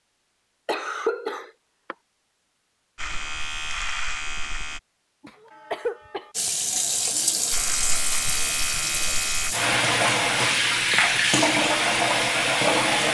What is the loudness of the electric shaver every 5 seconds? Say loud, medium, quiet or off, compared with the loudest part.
loud, loud, off.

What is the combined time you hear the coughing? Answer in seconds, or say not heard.
3 s.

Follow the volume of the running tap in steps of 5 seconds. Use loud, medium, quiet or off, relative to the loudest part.
off, medium, loud.